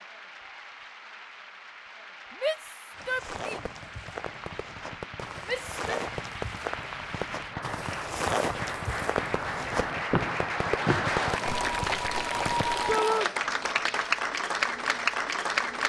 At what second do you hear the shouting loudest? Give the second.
13 s.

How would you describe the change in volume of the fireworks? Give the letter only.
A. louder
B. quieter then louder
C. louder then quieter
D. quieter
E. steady
A.